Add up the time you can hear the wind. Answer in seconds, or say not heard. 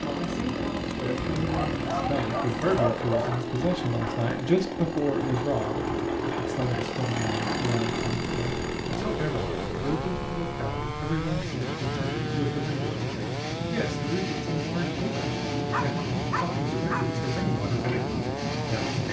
19 s.